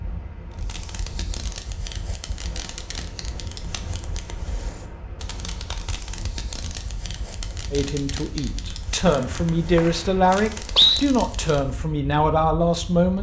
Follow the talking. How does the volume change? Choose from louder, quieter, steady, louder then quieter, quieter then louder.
louder.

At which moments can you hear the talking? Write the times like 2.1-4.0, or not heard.
7.7-13.1.